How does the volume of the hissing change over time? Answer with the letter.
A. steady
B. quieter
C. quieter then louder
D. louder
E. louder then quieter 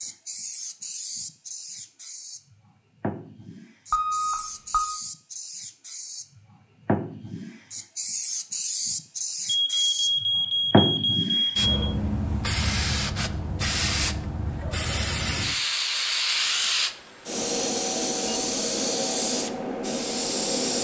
D.